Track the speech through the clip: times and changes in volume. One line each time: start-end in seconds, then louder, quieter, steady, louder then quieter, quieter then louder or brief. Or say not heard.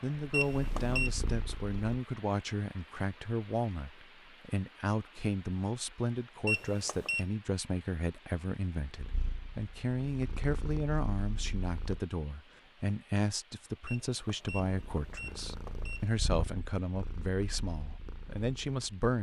0.0-19.1 steady.